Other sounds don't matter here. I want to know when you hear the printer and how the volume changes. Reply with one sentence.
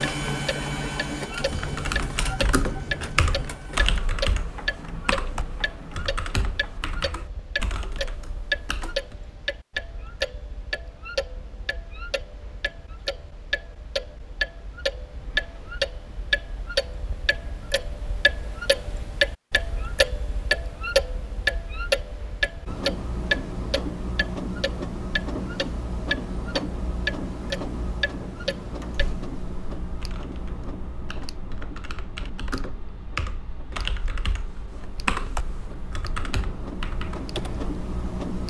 You can hear the printer from 0.0 to 7.2 s, getting quieter; and from 22.6 to 38.4 s, getting quieter then louder.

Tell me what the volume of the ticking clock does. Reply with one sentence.
The loudness of the ticking clock goes up, then down.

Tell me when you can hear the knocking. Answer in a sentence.
You can't hear the knocking here.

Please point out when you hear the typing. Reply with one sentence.
You can hear the typing from 1.4 to 9.2 s and from 29.9 to 37.7 s.